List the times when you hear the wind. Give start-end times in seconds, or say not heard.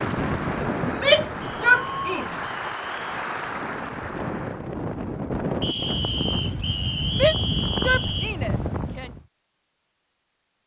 0.0-9.2.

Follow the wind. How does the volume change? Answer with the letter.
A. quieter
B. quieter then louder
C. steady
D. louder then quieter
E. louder
B.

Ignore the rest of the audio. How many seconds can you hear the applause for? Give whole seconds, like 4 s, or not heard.
5 s.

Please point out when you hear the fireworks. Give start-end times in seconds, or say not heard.
not heard.